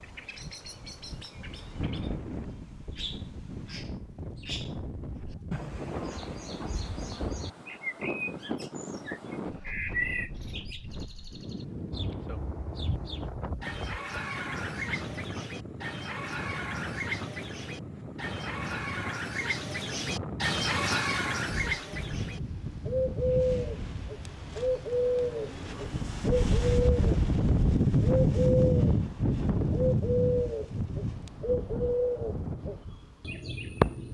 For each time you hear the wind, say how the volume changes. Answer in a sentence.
The wind can be heard from 0.0 to 34.0 s, getting louder.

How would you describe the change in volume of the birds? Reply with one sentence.
The loudness of the birds goes up.